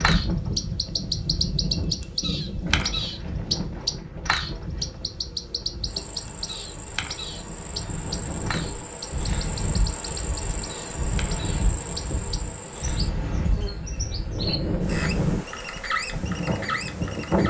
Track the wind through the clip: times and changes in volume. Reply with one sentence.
You can hear the wind from 0.0 to 17.4 s, getting quieter then louder.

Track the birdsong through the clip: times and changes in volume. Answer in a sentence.
You can hear the birdsong from 0.0 to 17.4 s, getting quieter then louder.